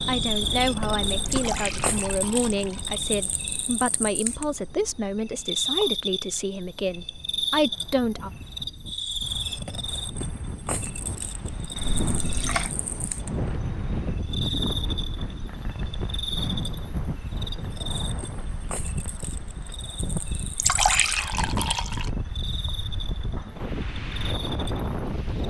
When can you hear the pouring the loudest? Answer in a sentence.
The loudest moment of the pouring is at 21 seconds.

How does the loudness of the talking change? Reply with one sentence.
The volume of the talking stays about the same.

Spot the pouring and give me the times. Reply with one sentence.
You can hear the pouring from 1.2 to 3.2 s, from 11.8 to 12.7 s and from 20.6 to 22.1 s.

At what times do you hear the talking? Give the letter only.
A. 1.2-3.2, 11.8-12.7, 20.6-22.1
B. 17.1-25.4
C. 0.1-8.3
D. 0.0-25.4
C.